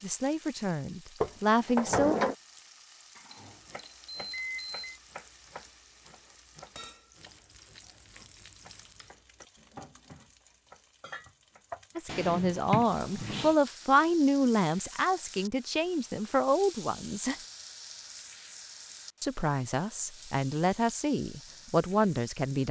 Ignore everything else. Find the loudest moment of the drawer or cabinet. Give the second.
2 s.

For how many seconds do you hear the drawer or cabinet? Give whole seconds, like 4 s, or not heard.
3 s.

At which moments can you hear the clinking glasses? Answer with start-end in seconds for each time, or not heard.
not heard.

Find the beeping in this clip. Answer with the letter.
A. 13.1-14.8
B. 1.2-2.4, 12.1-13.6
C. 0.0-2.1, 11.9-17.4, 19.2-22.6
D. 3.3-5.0
D.